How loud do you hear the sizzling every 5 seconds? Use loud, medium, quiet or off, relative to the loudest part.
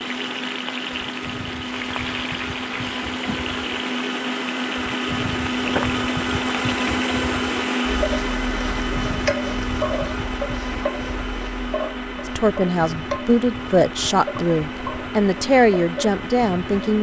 loud, loud, loud, medium.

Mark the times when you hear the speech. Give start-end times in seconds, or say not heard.
12.3-16.9.